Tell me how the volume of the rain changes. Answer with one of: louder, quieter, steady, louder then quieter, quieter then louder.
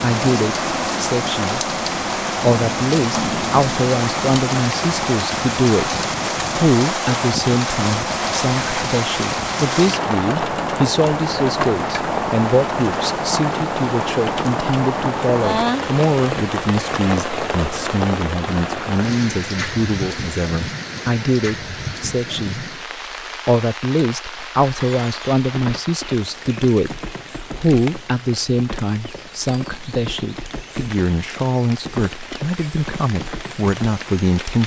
quieter.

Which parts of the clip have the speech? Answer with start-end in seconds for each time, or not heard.
0.0-1.6, 2.4-5.9, 6.5-22.6, 23.4-34.6.